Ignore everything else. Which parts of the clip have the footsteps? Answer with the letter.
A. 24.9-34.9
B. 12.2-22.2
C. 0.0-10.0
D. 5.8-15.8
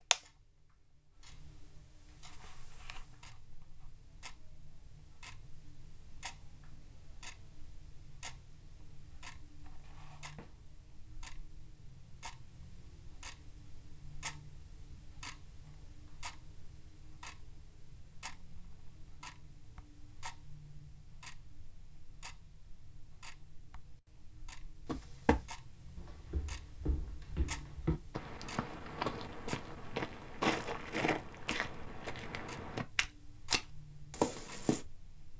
A.